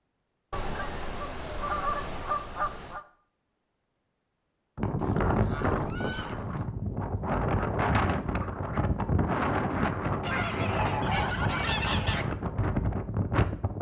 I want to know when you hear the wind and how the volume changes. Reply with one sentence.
You can hear the wind from 4.8 to 13.7 s, at a steady volume.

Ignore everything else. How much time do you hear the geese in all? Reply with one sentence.
The geese can be heard for 6 seconds in total.